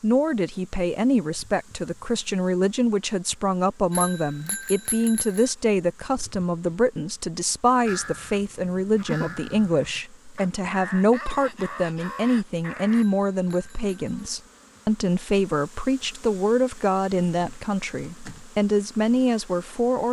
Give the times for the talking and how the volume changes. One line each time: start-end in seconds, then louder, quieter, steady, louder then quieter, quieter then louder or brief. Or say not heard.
0.0-20.0 steady.